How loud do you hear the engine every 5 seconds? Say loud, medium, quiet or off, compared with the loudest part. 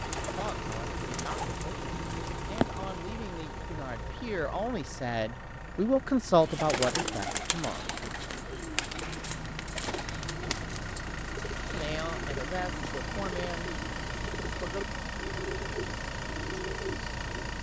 loud, medium, loud, loud.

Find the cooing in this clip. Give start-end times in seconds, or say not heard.
0.0-2.9, 6.4-17.5.